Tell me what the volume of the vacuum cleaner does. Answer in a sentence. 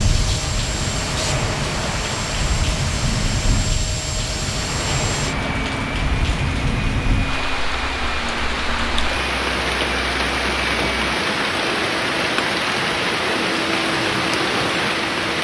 The volume of the vacuum cleaner stays about the same.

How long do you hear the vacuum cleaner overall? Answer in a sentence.
You can hear the vacuum cleaner for 15 seconds altogether.